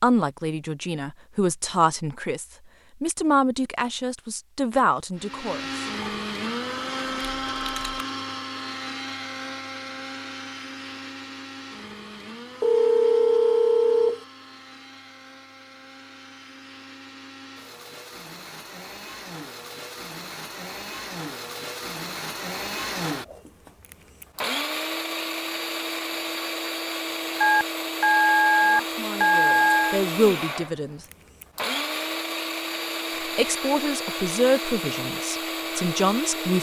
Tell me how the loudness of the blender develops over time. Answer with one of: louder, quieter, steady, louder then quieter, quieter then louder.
quieter then louder.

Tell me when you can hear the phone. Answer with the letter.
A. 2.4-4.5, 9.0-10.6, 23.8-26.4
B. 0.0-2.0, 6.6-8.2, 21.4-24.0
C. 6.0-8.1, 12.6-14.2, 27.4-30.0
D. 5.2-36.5
C.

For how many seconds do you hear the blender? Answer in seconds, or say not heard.
31 s.